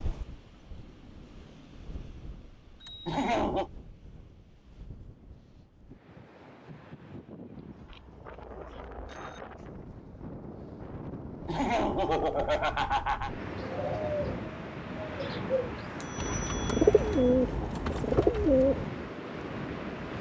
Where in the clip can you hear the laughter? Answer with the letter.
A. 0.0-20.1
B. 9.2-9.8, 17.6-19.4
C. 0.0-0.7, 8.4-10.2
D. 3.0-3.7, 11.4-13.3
D.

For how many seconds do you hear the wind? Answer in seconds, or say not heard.
20 s.